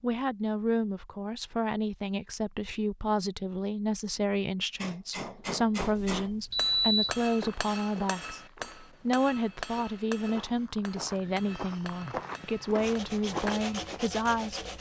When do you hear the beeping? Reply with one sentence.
The beeping can be heard from 6.0 to 7.2 s.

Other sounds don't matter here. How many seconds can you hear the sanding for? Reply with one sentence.
You can hear the sanding for 2 seconds altogether.